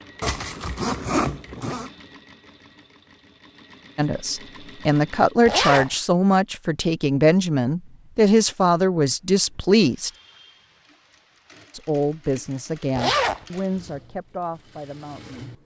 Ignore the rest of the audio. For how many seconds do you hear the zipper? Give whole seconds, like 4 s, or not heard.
3 s.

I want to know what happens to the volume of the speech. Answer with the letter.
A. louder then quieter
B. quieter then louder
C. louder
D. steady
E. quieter
E.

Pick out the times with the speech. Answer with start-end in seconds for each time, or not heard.
4.0-10.1, 11.7-15.5.